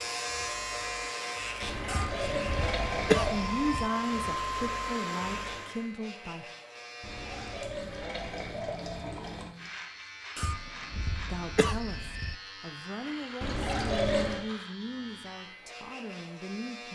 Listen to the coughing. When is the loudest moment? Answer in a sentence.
The loudest moment of the coughing is at 3 seconds.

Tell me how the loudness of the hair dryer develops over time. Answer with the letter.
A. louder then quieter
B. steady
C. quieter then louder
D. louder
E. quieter
D.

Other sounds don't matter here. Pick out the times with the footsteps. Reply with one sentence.
The footsteps can't be heard in this clip.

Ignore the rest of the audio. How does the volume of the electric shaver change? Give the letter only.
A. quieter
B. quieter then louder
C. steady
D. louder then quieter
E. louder
A.